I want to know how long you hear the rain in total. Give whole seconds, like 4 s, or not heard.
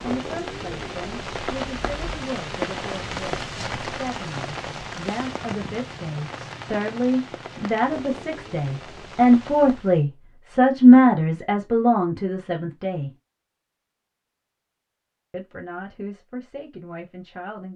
10 s.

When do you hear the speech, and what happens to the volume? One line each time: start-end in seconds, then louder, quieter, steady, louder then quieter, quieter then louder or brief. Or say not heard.
0.0-13.1 louder
15.3-17.7 brief.